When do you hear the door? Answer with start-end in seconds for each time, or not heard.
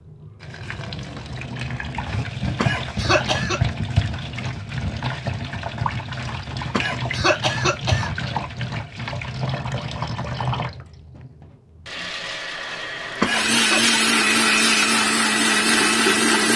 not heard.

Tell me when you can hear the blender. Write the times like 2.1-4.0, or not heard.
13.2-16.5.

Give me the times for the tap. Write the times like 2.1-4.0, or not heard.
0.0-16.5.